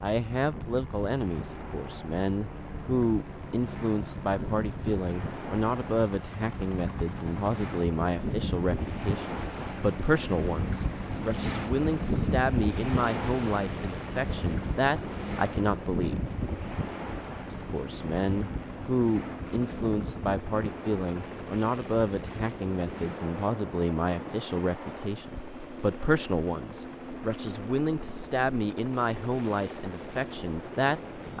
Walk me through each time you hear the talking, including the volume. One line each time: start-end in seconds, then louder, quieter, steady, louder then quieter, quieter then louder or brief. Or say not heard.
0.0-16.2 steady
17.5-31.3 steady.